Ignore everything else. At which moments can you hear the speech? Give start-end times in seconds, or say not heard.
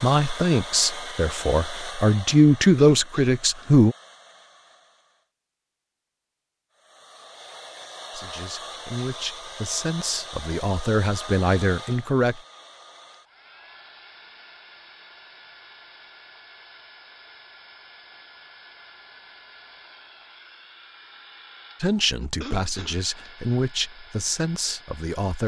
0.0-4.0, 8.1-12.4, 21.8-25.4.